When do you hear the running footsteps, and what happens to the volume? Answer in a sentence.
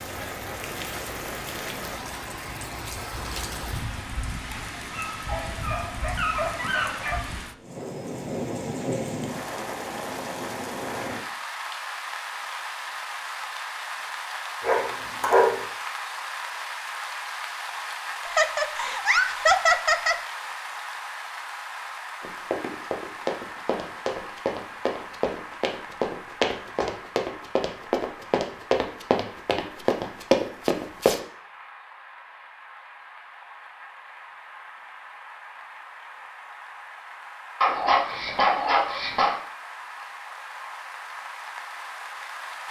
The running footsteps can be heard from 22.2 to 31.2 s, getting louder.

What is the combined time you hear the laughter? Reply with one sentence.
You can hear the laughter for 2 seconds altogether.